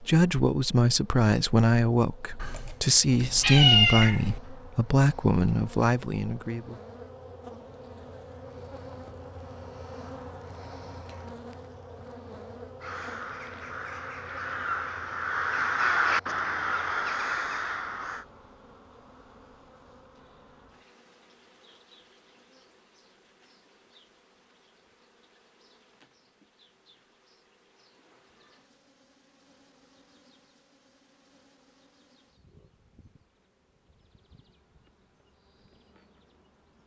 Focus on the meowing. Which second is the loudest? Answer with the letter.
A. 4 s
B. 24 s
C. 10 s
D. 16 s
A.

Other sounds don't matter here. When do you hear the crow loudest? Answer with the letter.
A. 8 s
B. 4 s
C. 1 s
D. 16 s
D.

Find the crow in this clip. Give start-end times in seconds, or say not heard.
12.8-18.2.